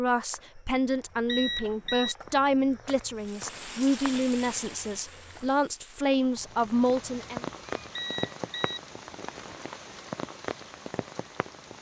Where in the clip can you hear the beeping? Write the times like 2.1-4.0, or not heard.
1.2-2.1, 8.0-8.8.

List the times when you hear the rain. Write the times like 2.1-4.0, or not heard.
3.1-11.7.